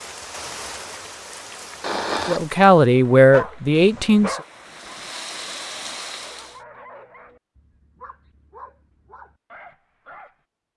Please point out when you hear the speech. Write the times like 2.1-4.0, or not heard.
2.2-4.3.